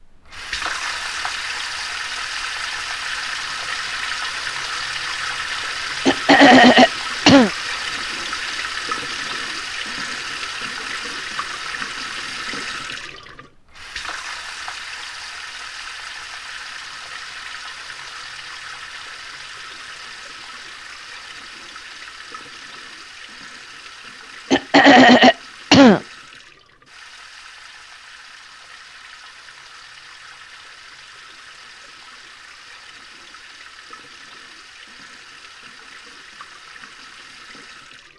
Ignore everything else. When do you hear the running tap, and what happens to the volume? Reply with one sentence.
The running tap can be heard from 0.0 to 38.1 s, getting quieter.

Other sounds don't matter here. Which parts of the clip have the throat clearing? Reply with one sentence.
You can hear the throat clearing from 6.0 to 7.5 s and from 24.5 to 26.0 s.